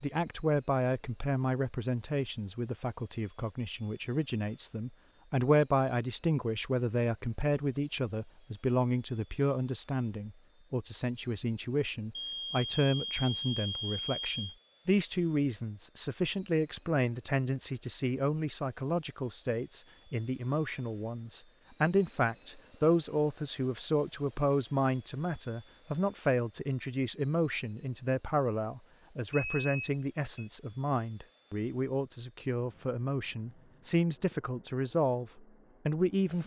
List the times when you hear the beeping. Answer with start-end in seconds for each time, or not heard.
12.2-14.6, 29.3-30.5.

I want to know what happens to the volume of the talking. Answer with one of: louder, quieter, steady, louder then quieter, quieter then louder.
steady.